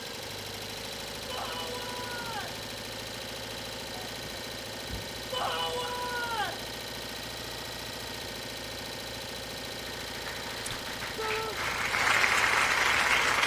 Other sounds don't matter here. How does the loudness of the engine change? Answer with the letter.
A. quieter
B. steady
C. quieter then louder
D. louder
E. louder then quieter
B.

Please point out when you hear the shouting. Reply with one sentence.
You can hear the shouting from 1.2 to 2.6 s, from 5.3 to 6.7 s and from 11.2 to 11.6 s.